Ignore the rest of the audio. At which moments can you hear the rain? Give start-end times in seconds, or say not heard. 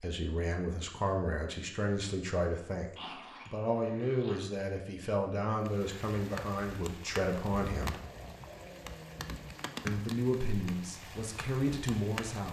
5.6-12.4.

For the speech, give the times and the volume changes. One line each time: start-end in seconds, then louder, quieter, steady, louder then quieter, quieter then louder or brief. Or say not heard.
0.0-8.0 steady
9.8-12.4 brief.